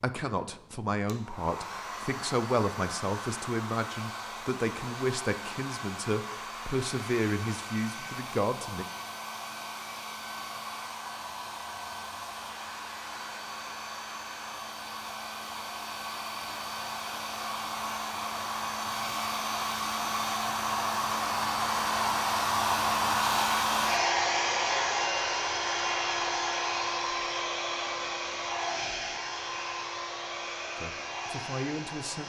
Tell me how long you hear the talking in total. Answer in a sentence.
The talking can be heard for 10 seconds in total.